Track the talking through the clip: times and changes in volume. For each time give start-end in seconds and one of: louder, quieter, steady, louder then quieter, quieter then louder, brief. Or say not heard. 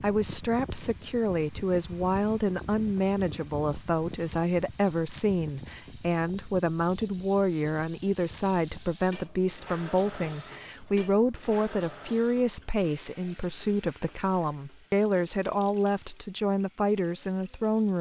0.0-17.9 steady.